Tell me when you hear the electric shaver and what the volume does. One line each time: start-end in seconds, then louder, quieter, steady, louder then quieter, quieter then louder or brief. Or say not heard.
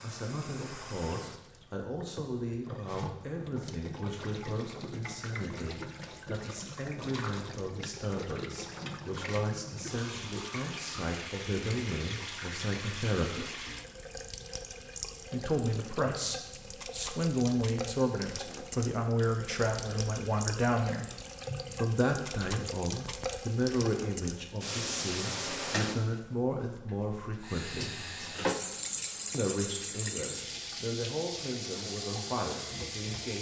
not heard.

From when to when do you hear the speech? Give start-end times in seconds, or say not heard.
0.0-13.4, 15.3-21.1, 21.8-27.9, 29.3-33.3.